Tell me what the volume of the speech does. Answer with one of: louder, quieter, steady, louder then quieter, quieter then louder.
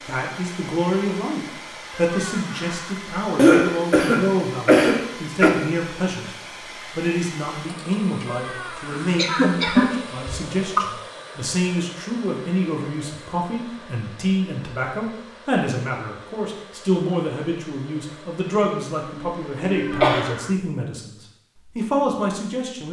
steady.